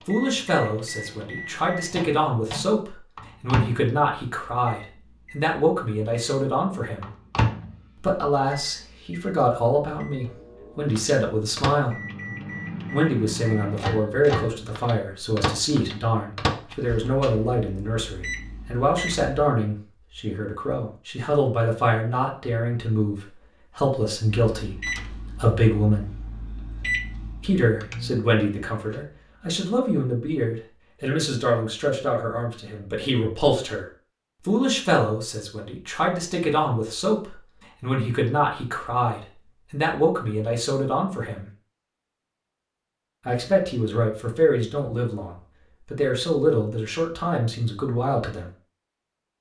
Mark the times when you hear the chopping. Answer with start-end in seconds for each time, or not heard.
not heard.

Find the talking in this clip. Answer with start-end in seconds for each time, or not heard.
0.1-7.1, 8.0-12.0, 12.9-26.1, 27.4-33.9, 34.5-41.5, 43.2-48.5.